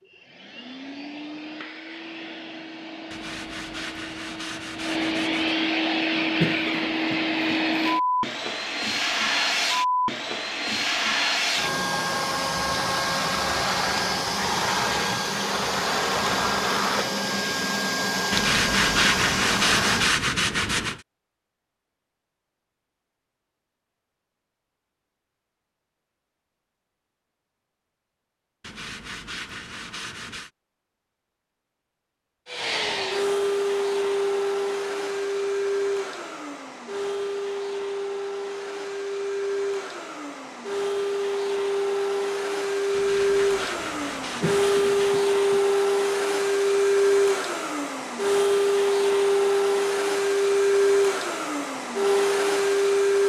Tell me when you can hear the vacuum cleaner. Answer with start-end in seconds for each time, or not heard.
0.0-20.2, 32.5-53.2.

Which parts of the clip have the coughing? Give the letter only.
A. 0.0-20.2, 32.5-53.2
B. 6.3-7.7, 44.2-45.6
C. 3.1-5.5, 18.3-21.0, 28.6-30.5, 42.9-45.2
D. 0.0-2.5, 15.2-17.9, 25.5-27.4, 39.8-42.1
B.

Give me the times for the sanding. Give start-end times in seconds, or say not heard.
3.1-5.5, 18.3-21.0, 28.6-30.5, 42.9-45.2.